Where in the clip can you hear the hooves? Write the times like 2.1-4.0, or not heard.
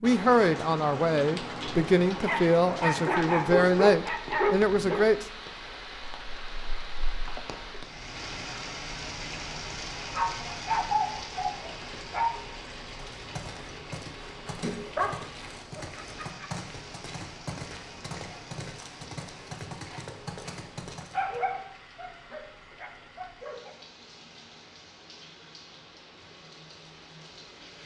12.9-21.4.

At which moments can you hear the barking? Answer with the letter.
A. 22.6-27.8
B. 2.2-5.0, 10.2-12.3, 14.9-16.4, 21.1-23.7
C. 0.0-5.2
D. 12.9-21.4
B.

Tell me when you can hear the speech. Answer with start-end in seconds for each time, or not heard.
0.0-5.2.